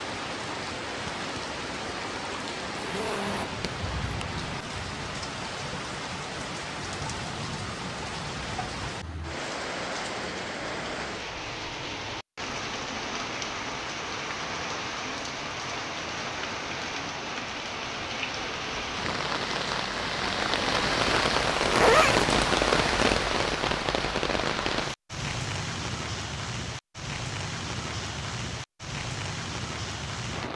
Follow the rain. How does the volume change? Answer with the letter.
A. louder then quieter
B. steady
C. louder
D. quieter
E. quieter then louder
A.